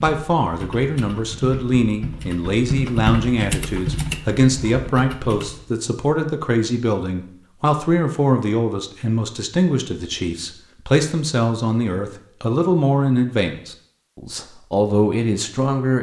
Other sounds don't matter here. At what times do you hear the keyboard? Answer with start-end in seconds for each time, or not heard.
0.0-5.7.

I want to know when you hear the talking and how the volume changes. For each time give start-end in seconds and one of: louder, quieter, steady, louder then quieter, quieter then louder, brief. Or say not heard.
0.0-15.9 steady.